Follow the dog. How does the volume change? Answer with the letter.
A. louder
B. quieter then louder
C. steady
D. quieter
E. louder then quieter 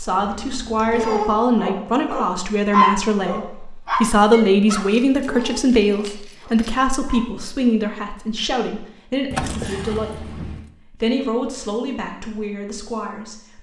E.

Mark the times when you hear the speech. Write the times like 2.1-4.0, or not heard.
0.0-13.5.